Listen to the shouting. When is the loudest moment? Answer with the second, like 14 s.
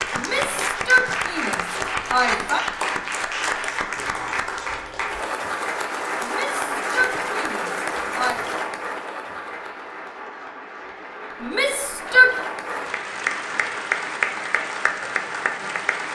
12 s.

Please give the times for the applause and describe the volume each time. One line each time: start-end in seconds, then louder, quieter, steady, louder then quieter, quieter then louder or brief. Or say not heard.
0.0-16.0 quieter then louder.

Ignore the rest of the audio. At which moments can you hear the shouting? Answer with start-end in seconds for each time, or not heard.
0.1-2.6, 6.2-8.4, 11.4-12.3.